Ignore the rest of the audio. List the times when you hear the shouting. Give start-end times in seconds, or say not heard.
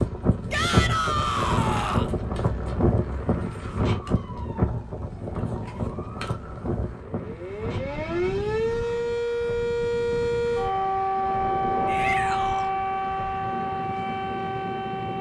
0.5-2.1, 11.8-12.7.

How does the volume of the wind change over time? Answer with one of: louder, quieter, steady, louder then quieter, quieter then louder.
quieter.